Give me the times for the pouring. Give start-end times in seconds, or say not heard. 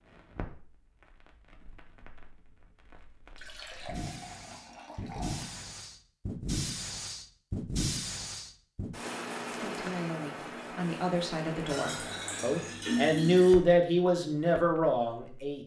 3.4-5.7, 11.7-13.6.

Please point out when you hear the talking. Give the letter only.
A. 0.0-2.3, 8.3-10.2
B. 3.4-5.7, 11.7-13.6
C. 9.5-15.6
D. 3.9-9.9
C.